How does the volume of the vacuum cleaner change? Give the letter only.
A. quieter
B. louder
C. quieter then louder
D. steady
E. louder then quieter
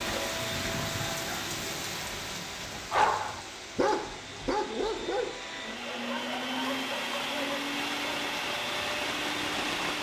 C.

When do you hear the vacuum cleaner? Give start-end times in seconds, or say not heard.
0.0-9.9.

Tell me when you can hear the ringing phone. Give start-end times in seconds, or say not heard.
not heard.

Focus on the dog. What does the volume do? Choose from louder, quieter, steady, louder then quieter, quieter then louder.
quieter.